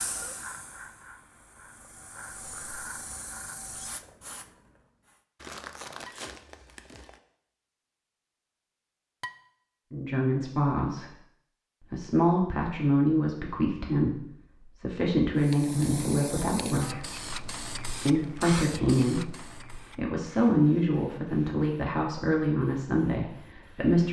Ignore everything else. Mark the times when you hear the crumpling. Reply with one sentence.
The crumpling can be heard from 5.3 to 7.2 s.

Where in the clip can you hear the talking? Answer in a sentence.
The talking can be heard from 9.9 to 11.2 s, from 11.9 to 17.1 s and from 18.1 to 24.0 s.